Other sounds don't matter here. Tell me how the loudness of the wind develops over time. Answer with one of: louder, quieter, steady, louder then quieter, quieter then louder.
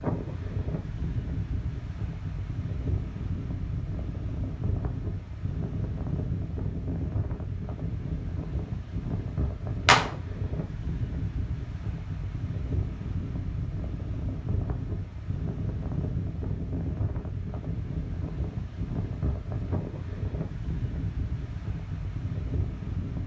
steady.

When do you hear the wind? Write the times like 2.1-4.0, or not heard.
0.0-23.2.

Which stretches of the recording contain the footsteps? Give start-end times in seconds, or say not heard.
not heard.